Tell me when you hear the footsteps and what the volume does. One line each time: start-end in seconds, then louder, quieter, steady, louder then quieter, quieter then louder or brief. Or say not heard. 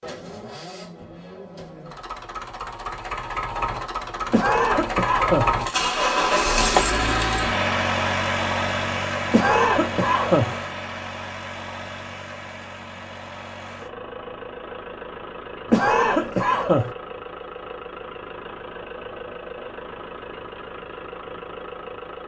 not heard.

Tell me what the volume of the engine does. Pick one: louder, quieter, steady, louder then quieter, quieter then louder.
louder then quieter.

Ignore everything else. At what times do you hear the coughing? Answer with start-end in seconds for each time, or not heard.
4.3-5.5, 9.3-10.6, 15.7-16.9.